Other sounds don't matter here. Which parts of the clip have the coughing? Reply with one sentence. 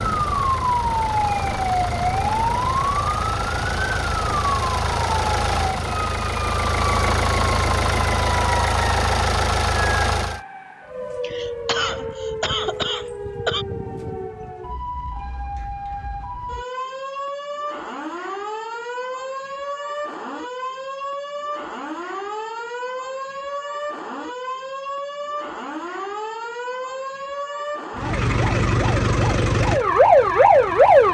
You can hear the coughing from 11.2 to 13.7 s.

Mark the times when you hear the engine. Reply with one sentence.
You can hear the engine from 0.0 to 10.4 s and from 27.9 to 31.0 s.